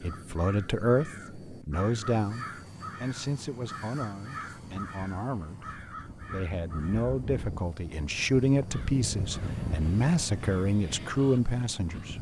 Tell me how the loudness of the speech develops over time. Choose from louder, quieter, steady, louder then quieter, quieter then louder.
quieter then louder.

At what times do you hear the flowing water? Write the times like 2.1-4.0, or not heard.
not heard.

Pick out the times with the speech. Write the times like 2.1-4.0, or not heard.
0.0-12.1.